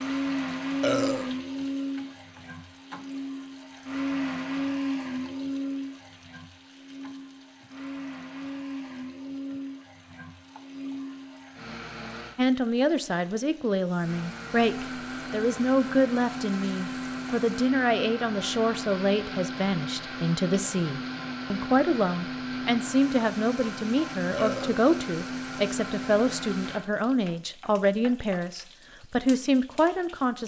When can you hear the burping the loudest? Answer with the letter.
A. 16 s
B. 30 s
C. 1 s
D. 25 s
C.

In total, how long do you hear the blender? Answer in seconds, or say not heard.
25 s.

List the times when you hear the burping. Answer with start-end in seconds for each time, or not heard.
0.8-1.3, 24.4-24.9.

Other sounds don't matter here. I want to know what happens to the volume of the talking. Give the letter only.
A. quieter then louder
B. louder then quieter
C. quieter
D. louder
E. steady
E.